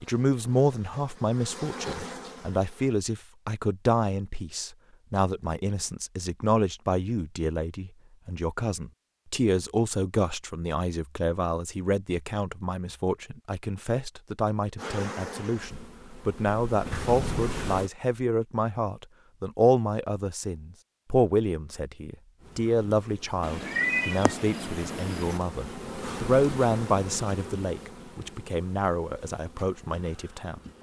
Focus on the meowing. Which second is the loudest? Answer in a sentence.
The volume of the meowing peaks at 24 seconds.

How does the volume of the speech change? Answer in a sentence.
The loudness of the speech stays about the same.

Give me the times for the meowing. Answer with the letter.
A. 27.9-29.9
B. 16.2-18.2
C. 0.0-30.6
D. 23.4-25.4
D.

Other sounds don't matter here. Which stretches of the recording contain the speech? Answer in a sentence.
You can hear the speech from 0.0 to 30.6 s.